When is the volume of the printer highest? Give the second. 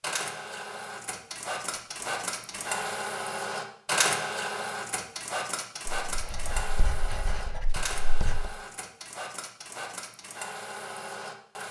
4 s.